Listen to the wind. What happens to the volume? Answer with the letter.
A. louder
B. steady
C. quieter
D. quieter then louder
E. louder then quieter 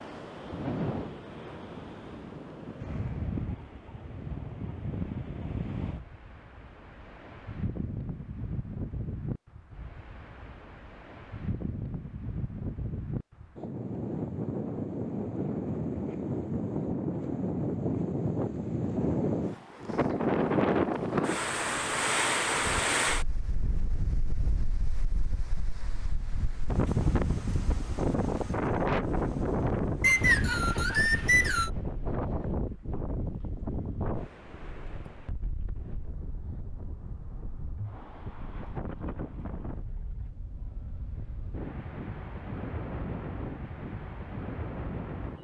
E.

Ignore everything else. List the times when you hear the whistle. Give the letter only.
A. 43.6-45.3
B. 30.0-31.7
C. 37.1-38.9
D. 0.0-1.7
B.